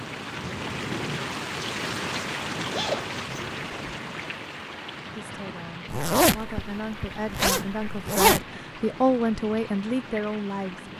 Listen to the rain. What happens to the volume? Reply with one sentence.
The volume of the rain goes down.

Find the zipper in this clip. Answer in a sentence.
You can hear the zipper from 2.7 to 3.8 s and from 5.9 to 8.4 s.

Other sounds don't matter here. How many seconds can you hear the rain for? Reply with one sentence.
You can hear the rain for 11 seconds altogether.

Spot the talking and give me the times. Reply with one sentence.
You can hear the talking from 5.2 to 10.9 s.